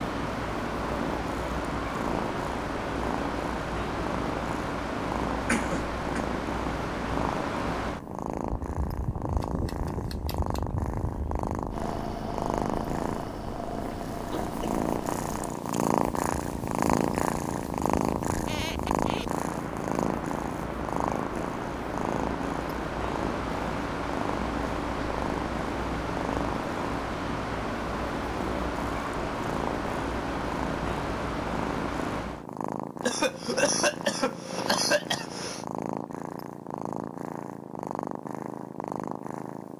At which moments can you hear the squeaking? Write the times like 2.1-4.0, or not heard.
18.4-19.3.